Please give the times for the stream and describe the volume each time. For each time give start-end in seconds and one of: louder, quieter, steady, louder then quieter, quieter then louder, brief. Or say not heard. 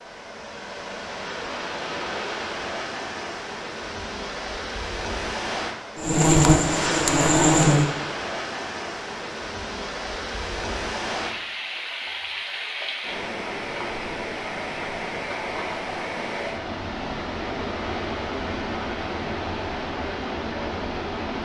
0.0-21.4 steady.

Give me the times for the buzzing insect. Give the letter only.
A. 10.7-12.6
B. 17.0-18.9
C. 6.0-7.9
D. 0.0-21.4
C.